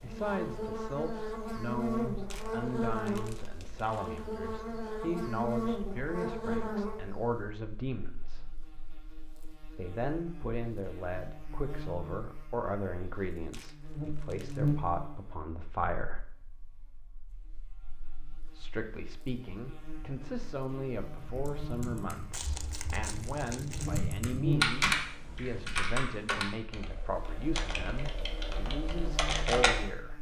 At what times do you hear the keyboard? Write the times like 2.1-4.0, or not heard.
21.2-29.9.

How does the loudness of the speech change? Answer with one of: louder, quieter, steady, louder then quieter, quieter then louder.
steady.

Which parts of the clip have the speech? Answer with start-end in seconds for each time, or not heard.
0.0-8.4, 9.8-16.2, 18.4-30.1.